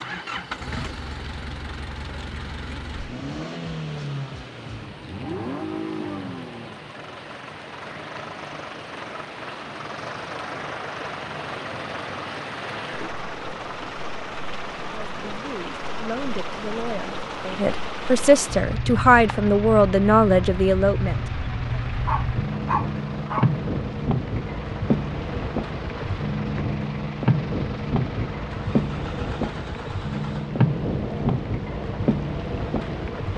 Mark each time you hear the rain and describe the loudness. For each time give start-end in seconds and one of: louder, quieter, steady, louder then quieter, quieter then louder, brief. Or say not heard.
0.0-33.3 louder.